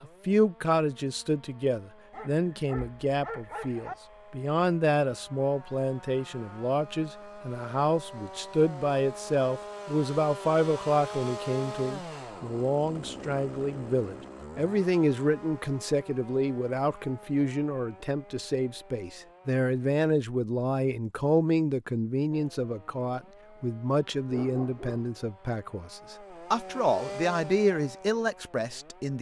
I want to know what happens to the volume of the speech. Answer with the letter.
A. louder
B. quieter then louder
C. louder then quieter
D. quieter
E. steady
E.